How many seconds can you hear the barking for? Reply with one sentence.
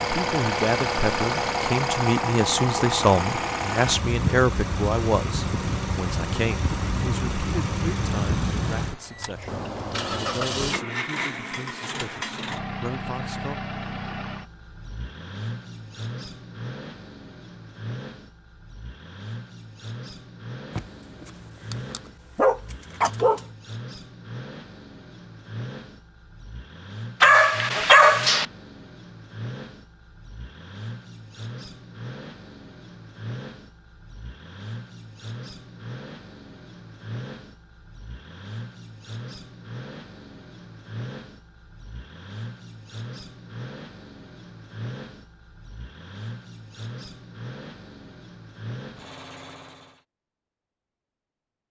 You can hear the barking for 4 seconds altogether.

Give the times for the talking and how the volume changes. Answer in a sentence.
You can hear the talking from 0.0 to 13.6 s, getting quieter.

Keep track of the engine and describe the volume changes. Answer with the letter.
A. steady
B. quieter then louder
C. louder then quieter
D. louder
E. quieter
E.